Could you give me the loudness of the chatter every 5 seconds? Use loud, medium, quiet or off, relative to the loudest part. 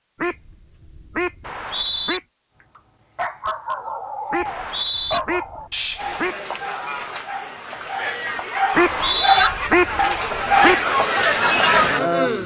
off, medium, loud.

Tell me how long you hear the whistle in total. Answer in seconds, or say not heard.
2 s.